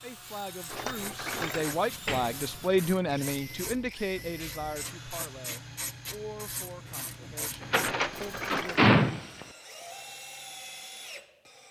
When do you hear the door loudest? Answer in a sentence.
The volume of the door peaks at 9 seconds.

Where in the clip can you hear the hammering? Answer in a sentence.
You can't hear the hammering here.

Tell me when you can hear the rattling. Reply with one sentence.
You can hear the rattling from 0.7 to 1.8 s and from 7.8 to 8.9 s.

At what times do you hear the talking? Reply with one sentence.
You can hear the talking from 0.0 to 8.8 s.